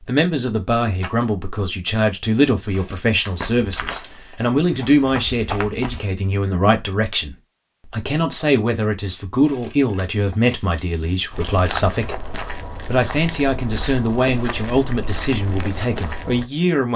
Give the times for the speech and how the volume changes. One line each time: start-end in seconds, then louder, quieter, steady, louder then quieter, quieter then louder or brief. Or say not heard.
0.0-16.9 steady.